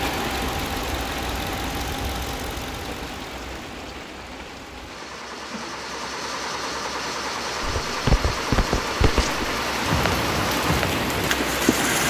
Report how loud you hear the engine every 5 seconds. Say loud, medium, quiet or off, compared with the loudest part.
medium, loud, loud.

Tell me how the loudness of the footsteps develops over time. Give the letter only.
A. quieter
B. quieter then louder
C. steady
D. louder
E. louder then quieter
A.